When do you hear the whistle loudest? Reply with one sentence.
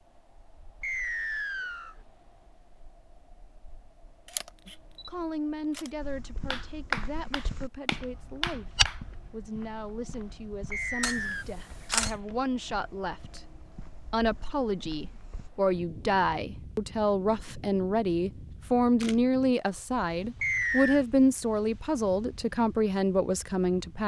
The loudest moment of the whistle is at 21 seconds.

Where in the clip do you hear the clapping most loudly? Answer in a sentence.
The volume of the clapping peaks at 7 seconds.